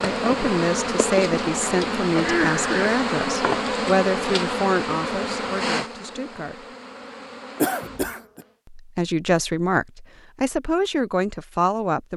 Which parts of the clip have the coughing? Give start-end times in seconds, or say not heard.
2.1-3.0, 7.6-8.2.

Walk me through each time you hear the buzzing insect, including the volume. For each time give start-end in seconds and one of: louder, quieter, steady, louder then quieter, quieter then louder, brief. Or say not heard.
0.0-8.6 quieter.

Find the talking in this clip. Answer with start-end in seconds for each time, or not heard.
0.0-6.8, 8.7-12.1.